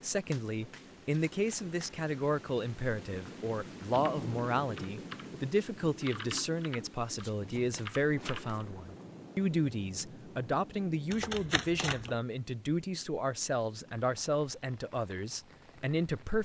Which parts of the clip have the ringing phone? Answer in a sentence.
You can't hear the ringing phone here.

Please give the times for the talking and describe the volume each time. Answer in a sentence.
You can hear the talking from 0.0 to 16.4 s, at a steady volume.